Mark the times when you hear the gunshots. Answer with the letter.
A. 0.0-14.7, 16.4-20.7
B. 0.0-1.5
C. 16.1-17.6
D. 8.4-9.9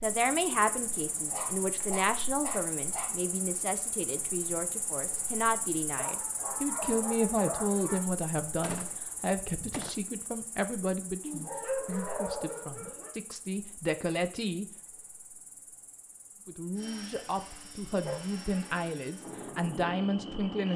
D.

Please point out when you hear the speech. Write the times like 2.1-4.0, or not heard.
0.0-14.7, 16.4-20.7.